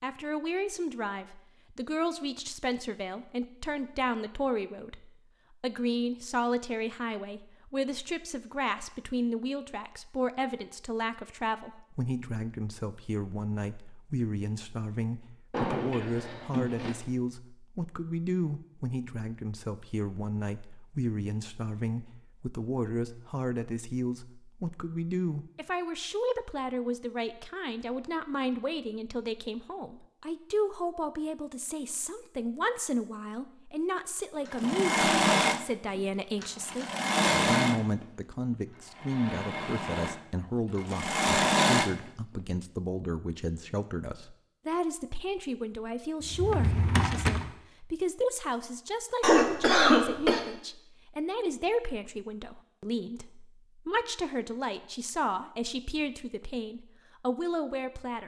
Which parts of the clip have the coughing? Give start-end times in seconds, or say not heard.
49.2-50.4.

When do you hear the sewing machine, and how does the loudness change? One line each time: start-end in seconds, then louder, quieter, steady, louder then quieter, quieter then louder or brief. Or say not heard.
34.5-42.1 quieter then louder.